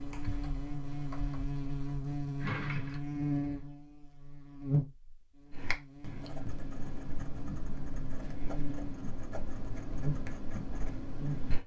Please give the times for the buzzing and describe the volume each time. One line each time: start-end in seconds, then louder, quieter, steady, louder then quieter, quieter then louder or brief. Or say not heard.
0.0-11.6 quieter then louder.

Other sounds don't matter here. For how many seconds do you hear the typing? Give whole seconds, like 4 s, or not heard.
3 s.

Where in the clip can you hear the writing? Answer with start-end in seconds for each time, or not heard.
5.5-11.6.